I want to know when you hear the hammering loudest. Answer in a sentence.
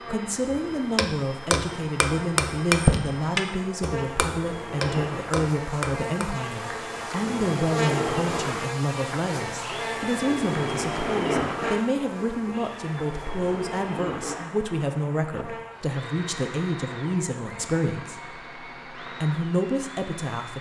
The loudest moment of the hammering is at 3 seconds.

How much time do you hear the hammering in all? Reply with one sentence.
The hammering can be heard for 6 seconds in total.